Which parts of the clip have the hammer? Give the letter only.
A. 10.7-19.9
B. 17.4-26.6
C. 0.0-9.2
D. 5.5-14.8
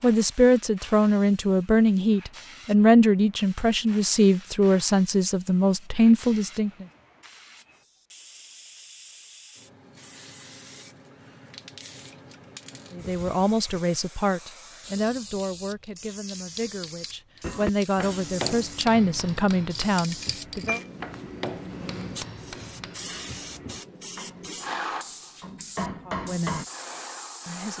B.